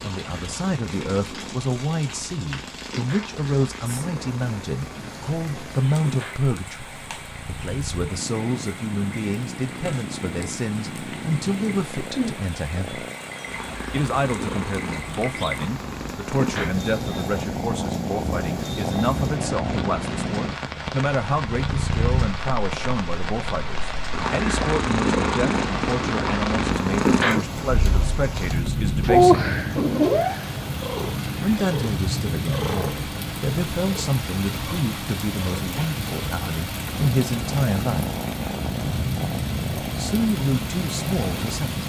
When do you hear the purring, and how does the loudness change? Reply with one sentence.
You can hear the purring from 0.0 to 41.8 s, getting louder then quieter.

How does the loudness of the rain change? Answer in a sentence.
The loudness of the rain goes up.